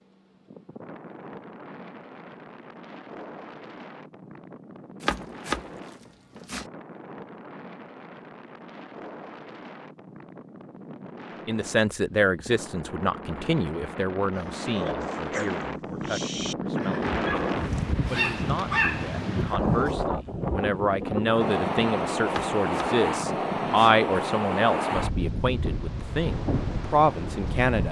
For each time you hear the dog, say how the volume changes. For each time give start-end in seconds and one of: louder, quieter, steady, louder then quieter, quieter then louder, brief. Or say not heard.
14.3-19.9 louder.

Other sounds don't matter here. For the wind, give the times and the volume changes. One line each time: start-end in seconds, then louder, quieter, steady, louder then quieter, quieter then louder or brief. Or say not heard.
0.0-27.8 louder.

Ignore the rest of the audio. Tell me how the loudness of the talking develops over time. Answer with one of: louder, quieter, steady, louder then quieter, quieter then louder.
quieter then louder.